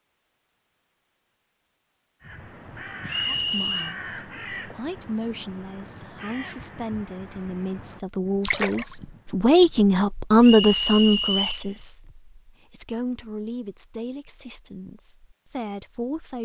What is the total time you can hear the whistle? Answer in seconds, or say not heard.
2 s.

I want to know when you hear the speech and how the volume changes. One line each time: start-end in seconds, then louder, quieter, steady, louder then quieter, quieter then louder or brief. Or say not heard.
3.2-16.3 louder then quieter.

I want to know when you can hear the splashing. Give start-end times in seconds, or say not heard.
8.4-8.9.